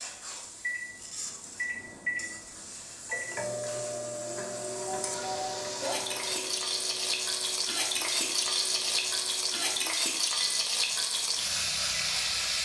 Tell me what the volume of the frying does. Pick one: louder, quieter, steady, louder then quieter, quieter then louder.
louder.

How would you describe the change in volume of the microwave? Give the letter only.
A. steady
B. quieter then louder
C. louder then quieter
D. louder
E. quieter
E.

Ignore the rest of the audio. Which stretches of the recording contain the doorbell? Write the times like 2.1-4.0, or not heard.
4.8-6.5.